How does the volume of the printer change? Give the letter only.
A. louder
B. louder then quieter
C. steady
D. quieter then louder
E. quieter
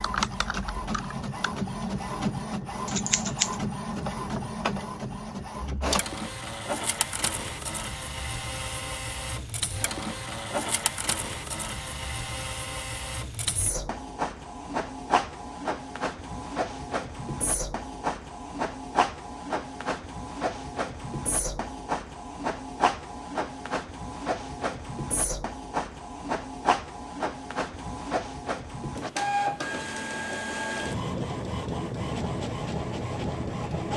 C.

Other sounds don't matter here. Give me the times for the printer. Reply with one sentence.
You can hear the printer from 0.0 to 33.9 s.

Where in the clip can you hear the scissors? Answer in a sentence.
The scissors can be heard from 2.9 to 3.5 s.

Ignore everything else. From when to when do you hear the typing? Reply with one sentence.
The typing can be heard from 0.0 to 1.6 s.